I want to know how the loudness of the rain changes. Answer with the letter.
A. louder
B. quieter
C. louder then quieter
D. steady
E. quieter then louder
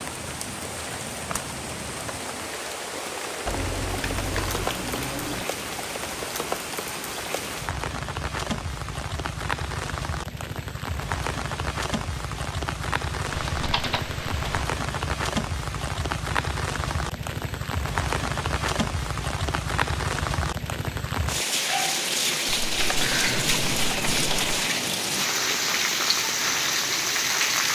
A.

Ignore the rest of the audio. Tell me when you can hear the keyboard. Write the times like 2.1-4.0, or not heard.
3.5-5.5, 13.3-14.7, 22.4-24.6.